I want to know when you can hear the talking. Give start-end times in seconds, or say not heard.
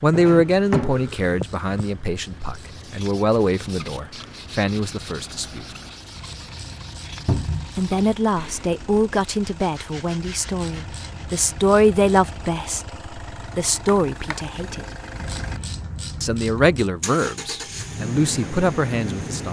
0.0-5.7, 7.8-14.8, 16.2-19.4.